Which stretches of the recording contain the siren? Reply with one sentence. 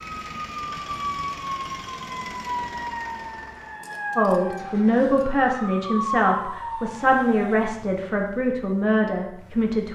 The siren can be heard from 0.0 to 7.7 s.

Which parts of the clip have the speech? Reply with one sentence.
You can hear the speech from 4.2 to 9.9 s.